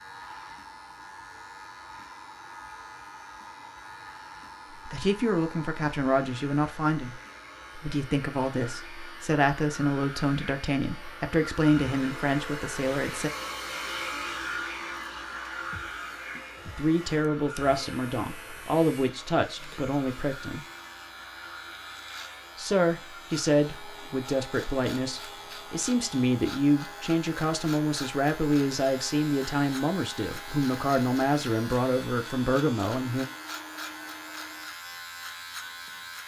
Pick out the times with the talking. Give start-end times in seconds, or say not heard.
4.8-13.3, 16.6-20.6, 22.6-33.2.